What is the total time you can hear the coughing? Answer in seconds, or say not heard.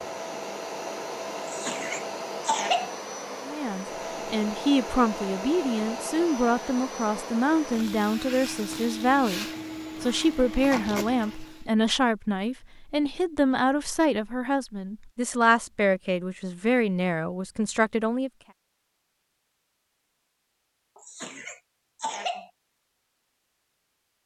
3 s.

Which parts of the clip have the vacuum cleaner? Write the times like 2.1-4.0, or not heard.
0.0-11.7.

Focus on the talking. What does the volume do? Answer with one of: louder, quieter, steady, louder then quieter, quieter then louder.
steady.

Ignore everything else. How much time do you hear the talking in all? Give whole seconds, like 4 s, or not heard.
15 s.